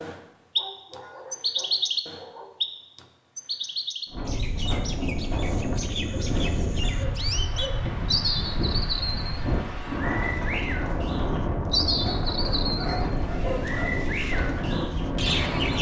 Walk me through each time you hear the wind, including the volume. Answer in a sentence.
The wind can be heard from 4.0 to 15.7 s, at a steady volume.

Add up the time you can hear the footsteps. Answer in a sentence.
The footsteps can't be heard in this clip.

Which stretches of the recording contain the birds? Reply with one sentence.
You can hear the birds from 0.0 to 15.7 s.